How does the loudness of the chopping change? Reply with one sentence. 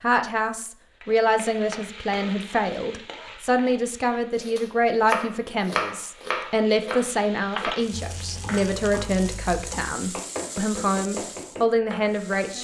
The loudness of the chopping goes down, then up.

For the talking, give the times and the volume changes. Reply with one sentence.
The talking can be heard from 0.0 to 12.5 s, at a steady volume.